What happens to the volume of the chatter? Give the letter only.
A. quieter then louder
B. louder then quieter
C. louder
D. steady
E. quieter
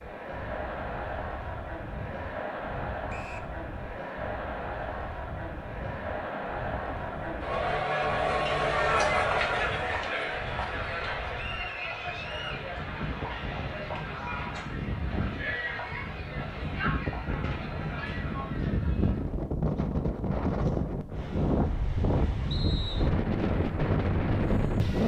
B.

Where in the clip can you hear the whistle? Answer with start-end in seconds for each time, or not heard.
3.0-3.5, 11.3-12.7, 22.5-23.1.